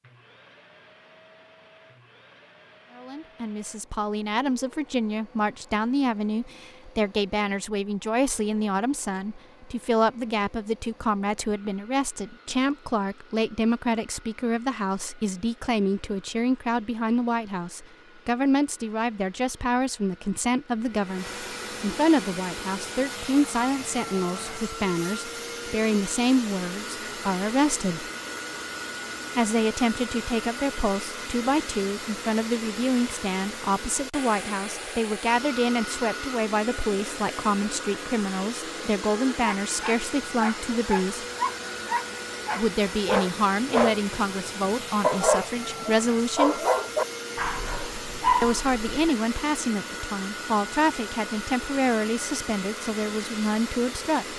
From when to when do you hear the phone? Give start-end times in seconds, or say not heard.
not heard.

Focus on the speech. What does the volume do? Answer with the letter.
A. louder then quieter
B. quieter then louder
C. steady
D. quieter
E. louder
C.